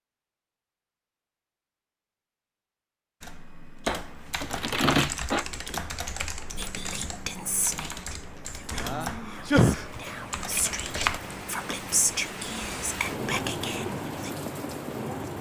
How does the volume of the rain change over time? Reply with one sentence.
The volume of the rain goes up.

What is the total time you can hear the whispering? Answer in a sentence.
The whispering can be heard for 8 seconds in total.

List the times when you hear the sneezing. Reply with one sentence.
You can hear the sneezing from 8.8 to 10.0 s.